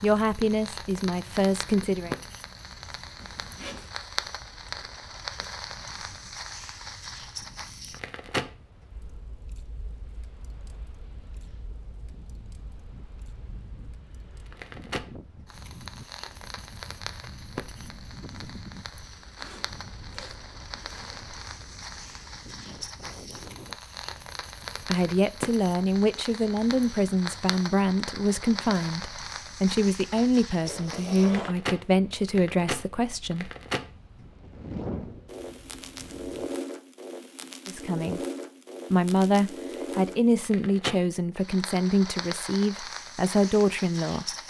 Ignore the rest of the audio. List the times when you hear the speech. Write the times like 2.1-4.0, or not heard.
0.0-2.1, 24.9-33.5, 37.6-38.2, 38.9-44.2.